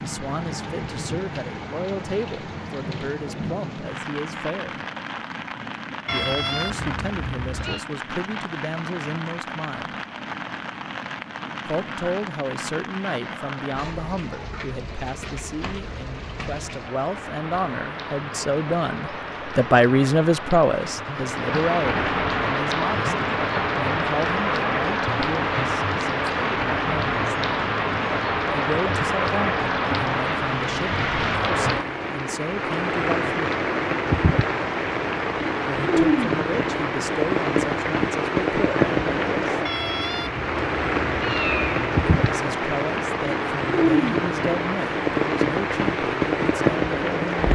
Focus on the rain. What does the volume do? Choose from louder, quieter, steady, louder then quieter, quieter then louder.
louder.